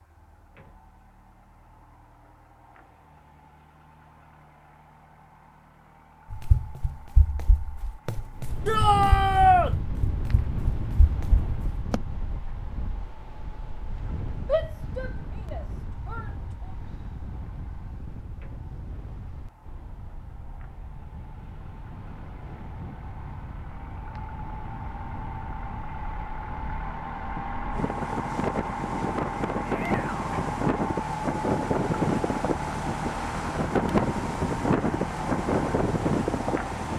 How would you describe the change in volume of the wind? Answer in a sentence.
The volume of the wind goes down, then up.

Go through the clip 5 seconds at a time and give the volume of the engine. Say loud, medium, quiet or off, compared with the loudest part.
quiet, quiet, quiet, quiet, quiet, loud, loud, loud.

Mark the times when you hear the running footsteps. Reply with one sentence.
You can hear the running footsteps from 6.3 to 12.0 s.